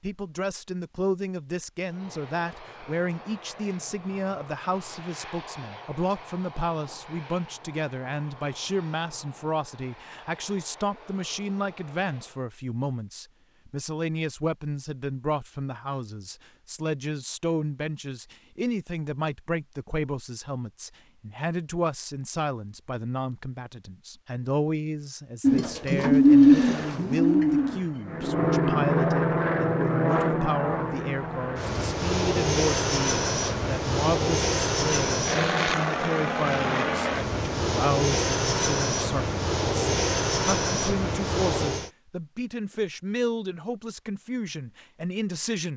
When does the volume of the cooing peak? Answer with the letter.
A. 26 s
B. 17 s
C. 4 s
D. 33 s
A.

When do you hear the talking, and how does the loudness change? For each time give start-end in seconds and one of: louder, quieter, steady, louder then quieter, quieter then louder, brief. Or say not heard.
0.0-45.7 steady.